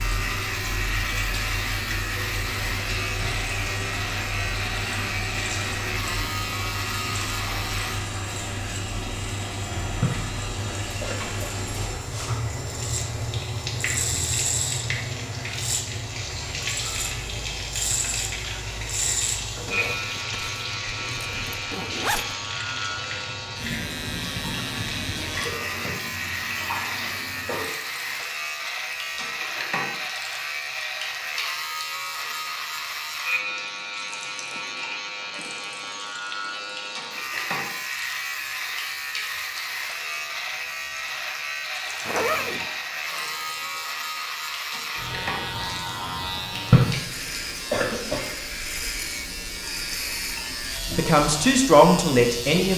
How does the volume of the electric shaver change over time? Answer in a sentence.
The loudness of the electric shaver stays about the same.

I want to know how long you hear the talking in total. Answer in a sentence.
The talking can be heard for 2 seconds in total.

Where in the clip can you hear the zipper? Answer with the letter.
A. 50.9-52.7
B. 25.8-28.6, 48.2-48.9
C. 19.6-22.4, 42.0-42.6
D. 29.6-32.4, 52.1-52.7
C.